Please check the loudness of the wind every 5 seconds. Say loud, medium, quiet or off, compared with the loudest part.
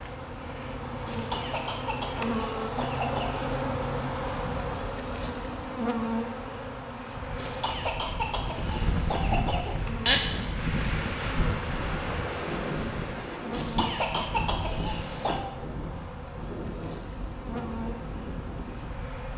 off, loud, loud, medium.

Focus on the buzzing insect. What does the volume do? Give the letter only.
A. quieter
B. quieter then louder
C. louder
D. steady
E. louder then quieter
A.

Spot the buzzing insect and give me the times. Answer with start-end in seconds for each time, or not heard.
0.0-19.3.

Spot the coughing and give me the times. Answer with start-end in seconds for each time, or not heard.
1.1-3.5, 7.3-10.2, 13.5-15.4.